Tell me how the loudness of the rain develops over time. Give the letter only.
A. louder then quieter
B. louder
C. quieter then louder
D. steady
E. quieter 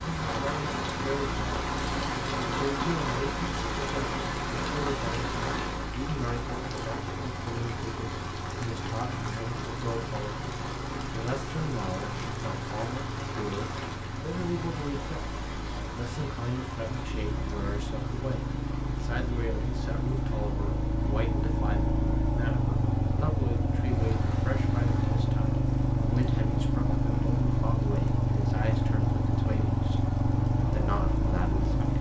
E.